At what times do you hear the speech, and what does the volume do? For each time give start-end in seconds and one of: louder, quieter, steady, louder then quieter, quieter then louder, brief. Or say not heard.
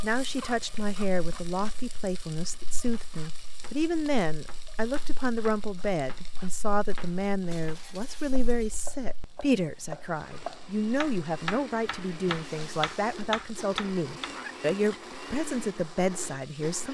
0.0-16.8 steady.